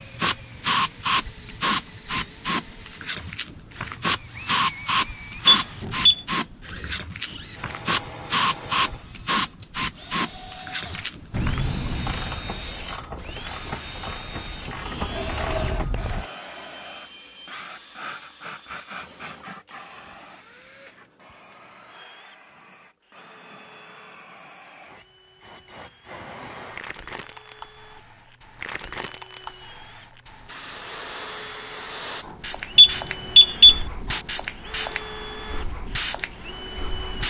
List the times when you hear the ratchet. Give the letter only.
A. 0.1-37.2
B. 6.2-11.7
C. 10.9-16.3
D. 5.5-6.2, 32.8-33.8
C.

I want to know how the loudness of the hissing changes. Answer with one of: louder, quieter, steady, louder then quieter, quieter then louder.
quieter then louder.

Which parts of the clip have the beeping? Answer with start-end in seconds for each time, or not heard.
5.5-6.2, 32.8-33.8.